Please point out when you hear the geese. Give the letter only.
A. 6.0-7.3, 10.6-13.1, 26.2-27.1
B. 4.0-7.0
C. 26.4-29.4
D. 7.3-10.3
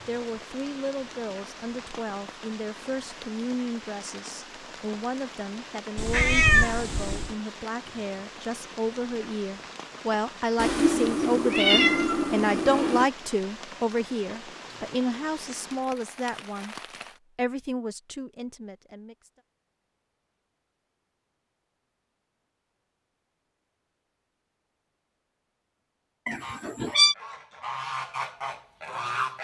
C.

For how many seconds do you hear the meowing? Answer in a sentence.
You can hear the meowing for 5 seconds altogether.